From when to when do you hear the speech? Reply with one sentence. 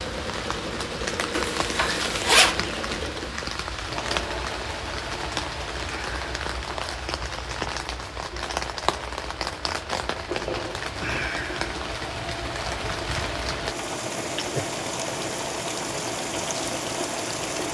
The speech can't be heard in this clip.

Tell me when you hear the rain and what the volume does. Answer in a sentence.
You can hear the rain from 0.0 to 17.6 s, at a steady volume.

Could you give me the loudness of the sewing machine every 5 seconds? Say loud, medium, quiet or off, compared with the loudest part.
loud, medium, loud, loud.